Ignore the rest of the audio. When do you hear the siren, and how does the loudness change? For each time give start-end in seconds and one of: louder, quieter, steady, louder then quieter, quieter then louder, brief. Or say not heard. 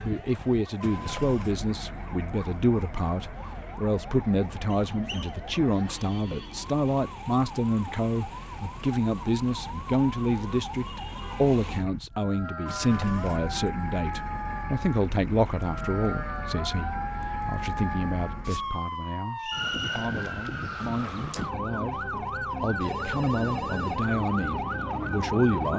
0.0-25.7 louder.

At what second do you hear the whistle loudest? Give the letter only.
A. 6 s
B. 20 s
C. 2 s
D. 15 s
B.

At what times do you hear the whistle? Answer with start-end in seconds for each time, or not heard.
4.7-5.3, 19.4-20.1.